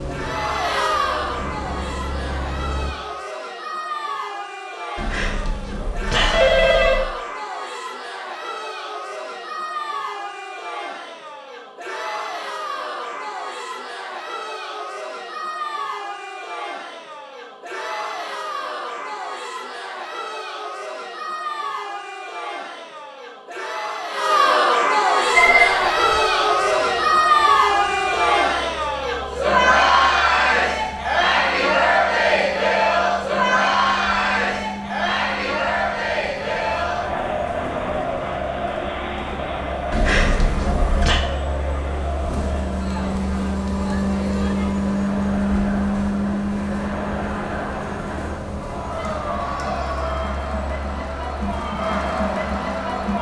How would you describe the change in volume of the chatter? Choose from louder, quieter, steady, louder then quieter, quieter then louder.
louder then quieter.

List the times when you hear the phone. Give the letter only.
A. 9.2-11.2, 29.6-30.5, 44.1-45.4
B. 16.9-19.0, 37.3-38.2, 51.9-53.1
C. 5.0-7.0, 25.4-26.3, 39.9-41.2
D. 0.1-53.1
C.